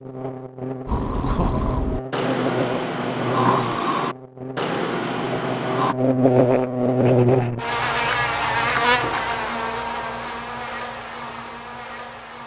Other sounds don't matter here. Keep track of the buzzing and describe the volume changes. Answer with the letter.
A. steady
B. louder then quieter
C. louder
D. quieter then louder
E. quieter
B.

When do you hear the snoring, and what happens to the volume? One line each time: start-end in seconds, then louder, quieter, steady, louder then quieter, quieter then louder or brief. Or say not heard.
0.8-6.0 steady.